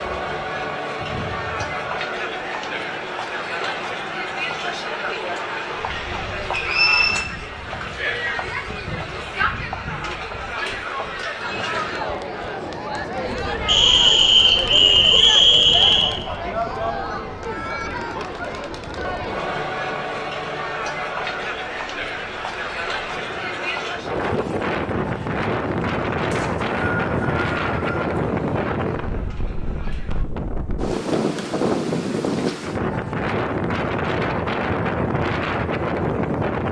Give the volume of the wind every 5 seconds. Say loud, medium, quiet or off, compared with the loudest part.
quiet, quiet, quiet, quiet, medium, loud, loud, loud.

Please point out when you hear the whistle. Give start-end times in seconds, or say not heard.
6.5-7.2, 13.7-16.1, 26.3-28.0.